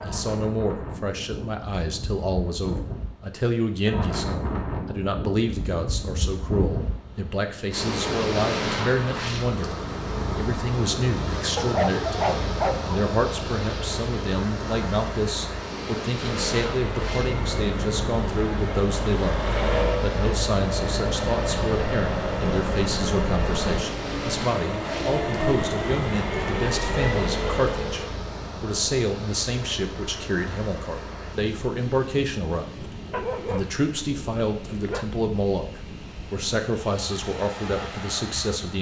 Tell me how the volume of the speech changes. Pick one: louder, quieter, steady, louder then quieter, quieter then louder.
steady.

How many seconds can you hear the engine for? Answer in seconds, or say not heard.
12 s.